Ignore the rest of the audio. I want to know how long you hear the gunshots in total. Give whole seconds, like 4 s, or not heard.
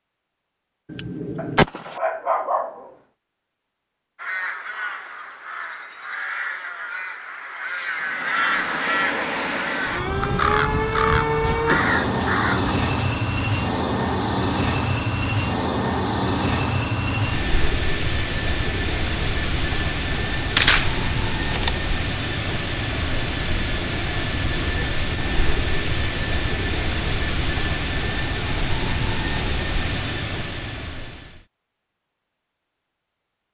2 s.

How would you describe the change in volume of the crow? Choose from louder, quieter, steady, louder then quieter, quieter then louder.
louder.